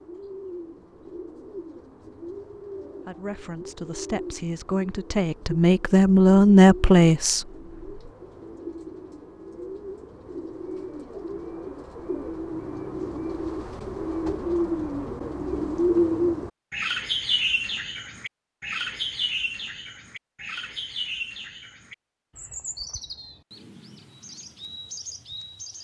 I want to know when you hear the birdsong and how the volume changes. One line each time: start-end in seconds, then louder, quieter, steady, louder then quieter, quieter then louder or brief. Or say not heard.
0.0-25.7 louder then quieter.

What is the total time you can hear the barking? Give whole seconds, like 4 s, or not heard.
not heard.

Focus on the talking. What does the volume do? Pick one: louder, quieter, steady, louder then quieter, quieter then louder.
louder.